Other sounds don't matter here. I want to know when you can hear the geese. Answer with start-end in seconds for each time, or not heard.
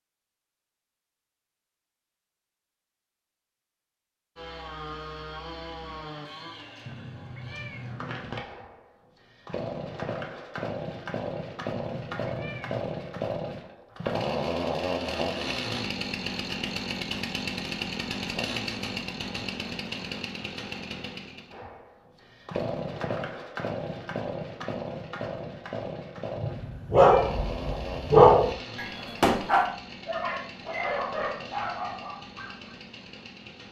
not heard.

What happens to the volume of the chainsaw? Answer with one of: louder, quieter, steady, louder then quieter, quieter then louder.
louder then quieter.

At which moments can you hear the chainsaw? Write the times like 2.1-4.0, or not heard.
4.3-33.6.